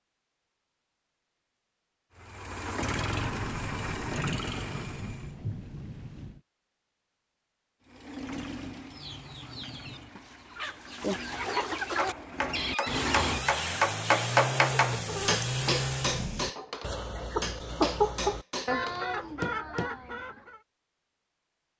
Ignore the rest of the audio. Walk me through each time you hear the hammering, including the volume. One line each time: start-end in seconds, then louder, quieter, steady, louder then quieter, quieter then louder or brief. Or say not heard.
11.9-19.9 louder then quieter.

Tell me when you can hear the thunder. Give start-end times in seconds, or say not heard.
3.1-6.4.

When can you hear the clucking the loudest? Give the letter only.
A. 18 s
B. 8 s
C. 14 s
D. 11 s
A.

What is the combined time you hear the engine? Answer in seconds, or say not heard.
12 s.